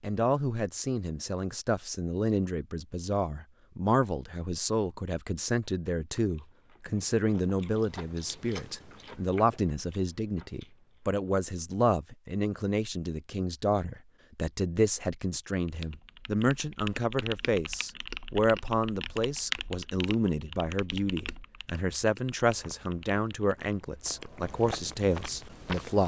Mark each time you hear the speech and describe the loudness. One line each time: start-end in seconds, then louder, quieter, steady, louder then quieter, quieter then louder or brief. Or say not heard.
0.0-26.0 steady.